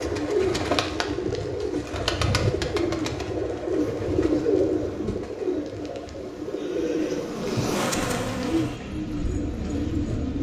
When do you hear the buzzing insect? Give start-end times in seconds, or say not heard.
3.8-8.8.